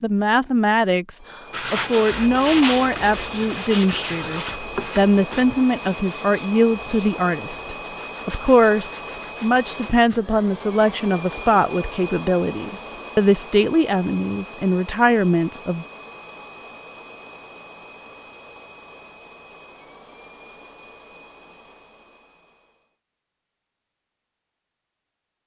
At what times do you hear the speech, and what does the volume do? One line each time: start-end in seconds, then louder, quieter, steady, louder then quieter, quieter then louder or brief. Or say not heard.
0.0-15.8 steady.